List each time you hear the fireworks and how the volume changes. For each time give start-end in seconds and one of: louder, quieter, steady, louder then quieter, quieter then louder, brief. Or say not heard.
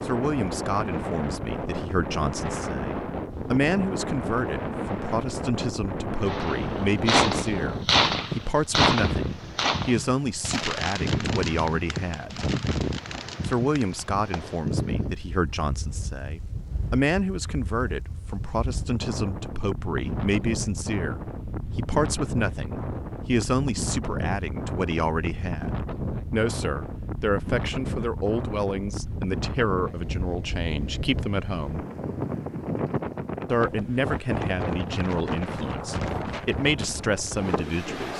6.2-14.6 quieter.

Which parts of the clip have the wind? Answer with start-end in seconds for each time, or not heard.
0.0-38.1.